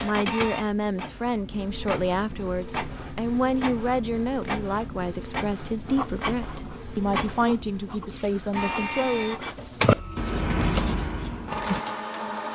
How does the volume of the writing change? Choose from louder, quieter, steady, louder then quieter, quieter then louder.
louder.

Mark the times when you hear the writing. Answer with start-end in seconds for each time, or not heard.
5.8-11.9.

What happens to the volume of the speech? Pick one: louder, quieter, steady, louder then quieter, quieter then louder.
steady.